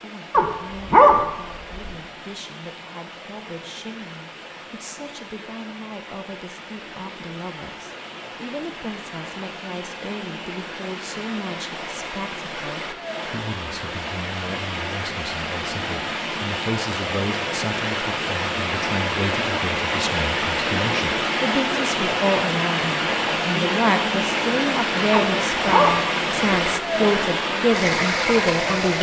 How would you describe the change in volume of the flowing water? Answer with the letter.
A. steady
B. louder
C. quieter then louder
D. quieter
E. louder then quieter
B.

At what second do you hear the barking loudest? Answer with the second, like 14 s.
1 s.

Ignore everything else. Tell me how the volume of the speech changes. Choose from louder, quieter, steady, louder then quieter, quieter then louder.
louder.